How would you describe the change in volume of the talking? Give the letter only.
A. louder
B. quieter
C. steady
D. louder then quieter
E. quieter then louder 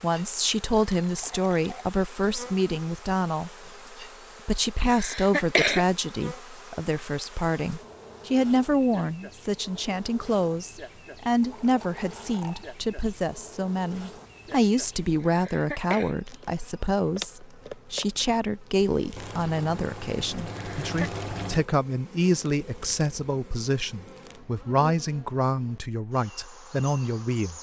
C.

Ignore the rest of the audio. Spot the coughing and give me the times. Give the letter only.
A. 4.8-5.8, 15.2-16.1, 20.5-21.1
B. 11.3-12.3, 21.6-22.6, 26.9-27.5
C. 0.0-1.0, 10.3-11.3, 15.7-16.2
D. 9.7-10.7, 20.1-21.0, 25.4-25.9
A.